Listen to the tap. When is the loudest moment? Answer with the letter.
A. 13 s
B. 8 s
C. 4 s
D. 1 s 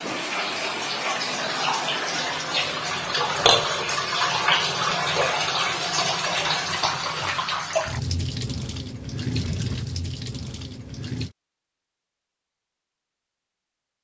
C.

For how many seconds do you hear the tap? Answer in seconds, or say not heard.
11 s.